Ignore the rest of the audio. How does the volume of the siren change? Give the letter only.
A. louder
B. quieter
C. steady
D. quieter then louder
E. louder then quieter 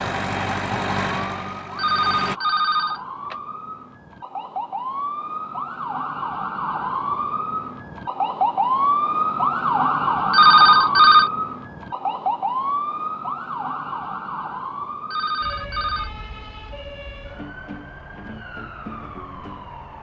E.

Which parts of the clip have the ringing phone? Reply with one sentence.
You can hear the ringing phone from 1.8 to 3.4 s, from 10.3 to 11.3 s and from 15.1 to 16.1 s.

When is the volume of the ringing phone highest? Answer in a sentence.
The loudest moment of the ringing phone is at 11 seconds.